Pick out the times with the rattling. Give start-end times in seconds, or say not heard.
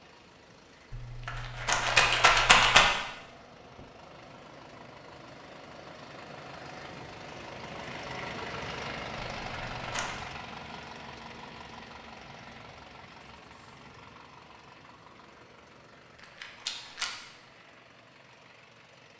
0.9-2.9, 9.3-10.2, 16.2-17.1.